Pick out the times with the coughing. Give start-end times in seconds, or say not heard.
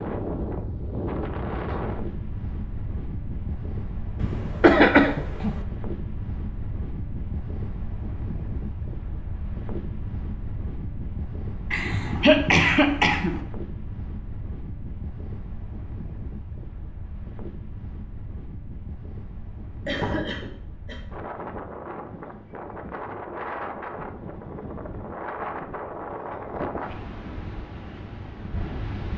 4.2-5.5, 11.7-13.4, 19.9-21.0.